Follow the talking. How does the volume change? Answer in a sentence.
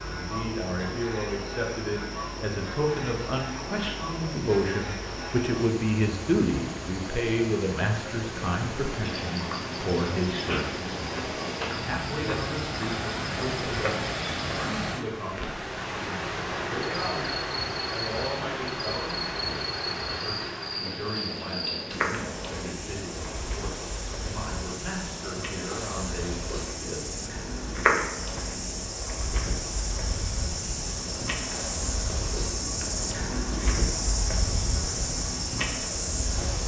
The loudness of the talking goes down.